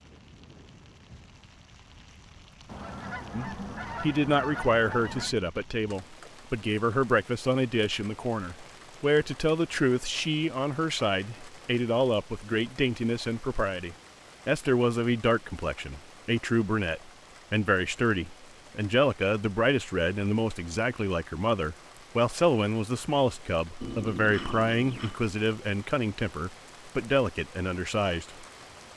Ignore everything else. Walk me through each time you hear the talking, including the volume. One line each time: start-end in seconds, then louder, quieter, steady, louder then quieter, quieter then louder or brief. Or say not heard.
3.3-28.4 steady.